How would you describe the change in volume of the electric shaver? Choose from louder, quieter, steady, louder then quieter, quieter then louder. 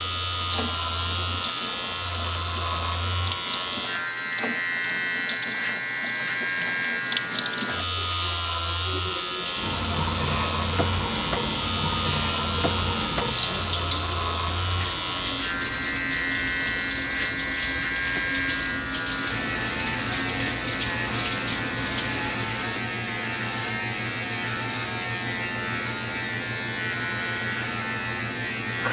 steady.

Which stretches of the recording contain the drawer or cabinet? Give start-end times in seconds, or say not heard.
not heard.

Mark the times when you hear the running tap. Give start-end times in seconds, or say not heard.
0.0-22.7.